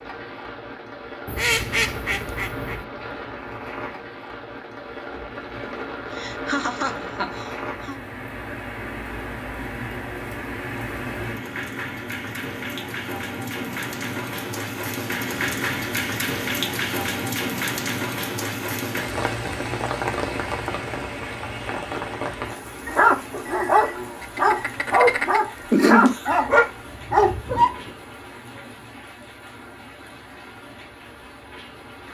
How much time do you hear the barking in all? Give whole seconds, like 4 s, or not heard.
5 s.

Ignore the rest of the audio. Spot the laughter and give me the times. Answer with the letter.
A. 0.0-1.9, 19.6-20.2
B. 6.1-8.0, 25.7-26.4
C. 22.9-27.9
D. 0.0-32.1
B.